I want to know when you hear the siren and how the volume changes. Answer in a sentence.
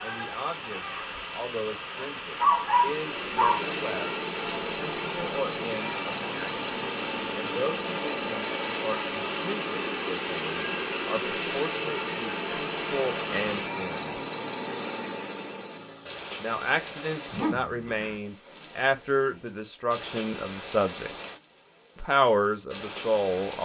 The siren can't be heard in this clip.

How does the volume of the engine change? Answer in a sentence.
The volume of the engine stays about the same.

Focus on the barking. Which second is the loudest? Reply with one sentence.
The volume of the barking peaks at 3 seconds.